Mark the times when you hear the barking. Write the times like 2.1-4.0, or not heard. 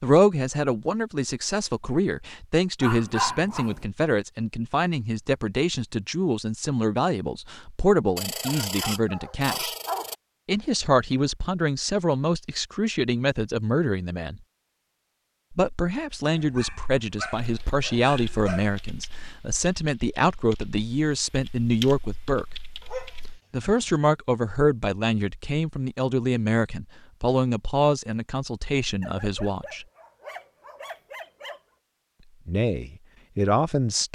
2.8-3.9, 8.2-10.2, 16.2-18.8, 22.8-24.0, 29.0-31.6.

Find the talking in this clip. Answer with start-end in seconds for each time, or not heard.
0.0-9.8, 10.4-14.4, 15.5-22.6, 23.5-29.9, 32.5-34.1.